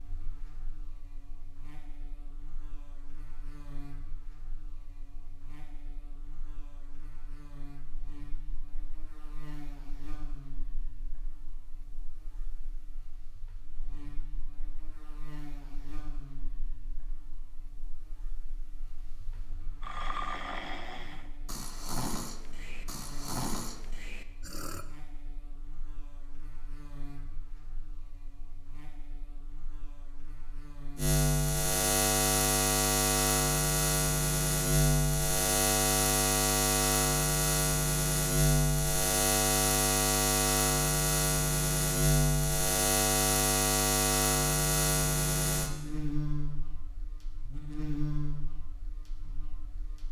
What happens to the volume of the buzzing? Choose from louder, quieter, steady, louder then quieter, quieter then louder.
louder.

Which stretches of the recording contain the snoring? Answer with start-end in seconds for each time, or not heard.
19.4-24.9.